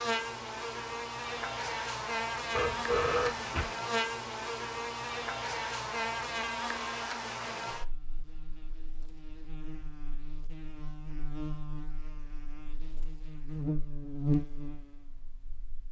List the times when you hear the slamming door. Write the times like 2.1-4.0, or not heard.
not heard.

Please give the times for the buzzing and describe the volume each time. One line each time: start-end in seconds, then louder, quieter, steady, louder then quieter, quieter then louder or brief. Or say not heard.
0.0-15.8 quieter then louder.